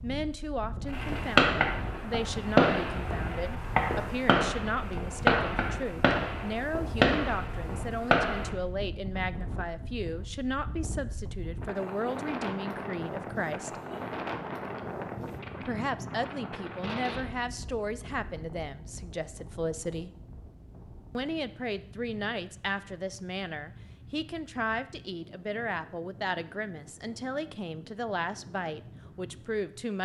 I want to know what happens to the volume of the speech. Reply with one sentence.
The loudness of the speech stays about the same.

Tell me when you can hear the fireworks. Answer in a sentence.
You can hear the fireworks from 0.9 to 8.5 s.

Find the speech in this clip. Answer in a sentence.
You can hear the speech from 0.0 to 13.8 s, from 15.6 to 20.1 s and from 21.1 to 30.0 s.